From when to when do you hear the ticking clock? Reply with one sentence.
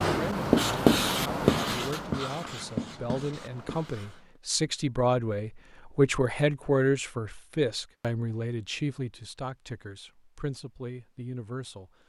You can't hear the ticking clock here.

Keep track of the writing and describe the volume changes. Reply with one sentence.
The volume of the writing goes down.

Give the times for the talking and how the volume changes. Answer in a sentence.
The talking can be heard from 0.0 to 11.9 s, getting louder then quieter.